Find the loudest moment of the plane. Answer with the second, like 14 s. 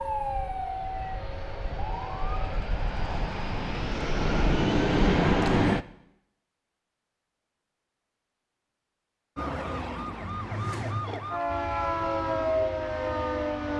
5 s.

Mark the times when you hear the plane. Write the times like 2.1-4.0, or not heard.
0.0-5.8, 11.4-13.7.